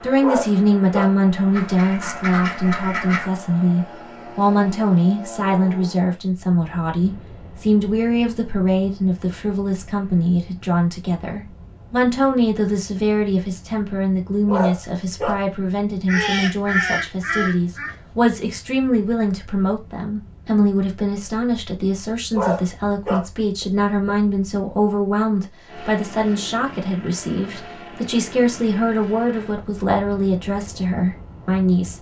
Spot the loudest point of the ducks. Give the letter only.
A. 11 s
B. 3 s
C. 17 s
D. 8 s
C.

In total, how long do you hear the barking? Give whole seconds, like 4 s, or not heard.
3 s.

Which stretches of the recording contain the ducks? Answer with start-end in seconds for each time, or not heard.
1.5-3.4, 16.1-17.9.